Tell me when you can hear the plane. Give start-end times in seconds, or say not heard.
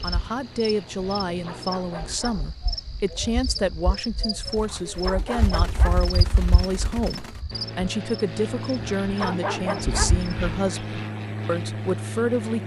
0.0-2.2, 7.5-12.6.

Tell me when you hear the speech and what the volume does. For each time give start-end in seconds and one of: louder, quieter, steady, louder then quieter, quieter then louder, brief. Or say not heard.
0.0-12.6 steady.